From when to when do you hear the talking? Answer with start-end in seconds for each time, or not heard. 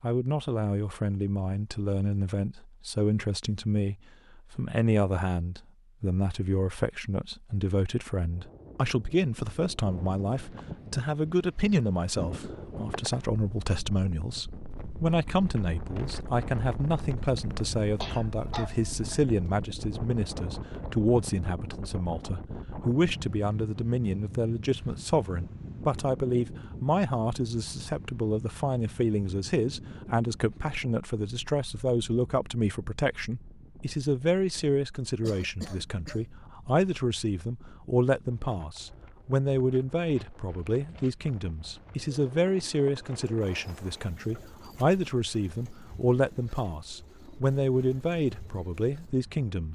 0.0-49.7.